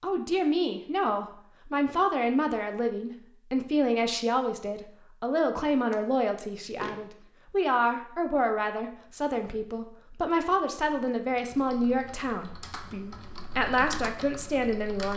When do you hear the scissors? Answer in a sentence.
The scissors can be heard from 5.9 to 7.0 s.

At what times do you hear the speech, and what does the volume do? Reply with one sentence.
The speech can be heard from 0.0 to 15.1 s, at a steady volume.